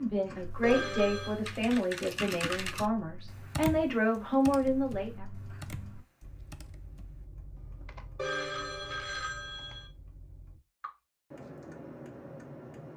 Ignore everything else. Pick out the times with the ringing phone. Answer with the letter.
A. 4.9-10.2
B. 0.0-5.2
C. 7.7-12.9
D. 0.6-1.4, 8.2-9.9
D.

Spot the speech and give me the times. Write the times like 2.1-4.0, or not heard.
0.0-5.2.